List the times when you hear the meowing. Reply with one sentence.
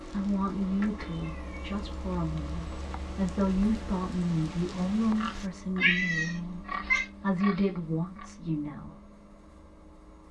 The meowing can be heard from 0.7 to 1.6 s and from 5.8 to 7.0 s.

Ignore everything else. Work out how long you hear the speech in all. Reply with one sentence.
You can hear the speech for 9 seconds altogether.